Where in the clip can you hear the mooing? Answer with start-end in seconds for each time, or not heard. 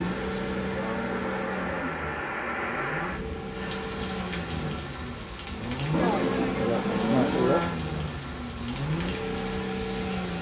0.7-2.0, 5.9-7.8.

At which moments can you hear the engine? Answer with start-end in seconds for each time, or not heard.
0.0-10.3.